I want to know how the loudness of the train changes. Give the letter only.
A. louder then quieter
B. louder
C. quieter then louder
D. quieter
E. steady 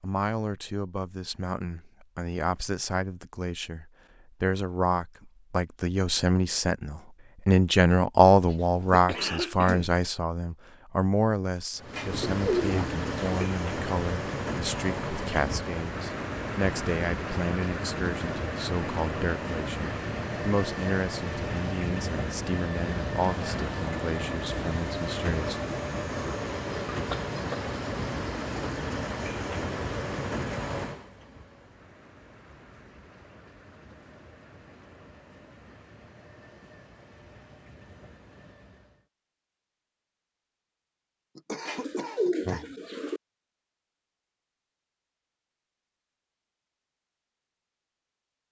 D.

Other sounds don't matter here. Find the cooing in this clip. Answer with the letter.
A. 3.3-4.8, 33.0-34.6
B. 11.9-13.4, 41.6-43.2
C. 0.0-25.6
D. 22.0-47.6
B.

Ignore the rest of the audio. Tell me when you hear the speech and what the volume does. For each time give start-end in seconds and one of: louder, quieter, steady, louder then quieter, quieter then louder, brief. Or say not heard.
0.0-25.6 louder then quieter.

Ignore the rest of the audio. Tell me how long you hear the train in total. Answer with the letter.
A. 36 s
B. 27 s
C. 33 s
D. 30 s
B.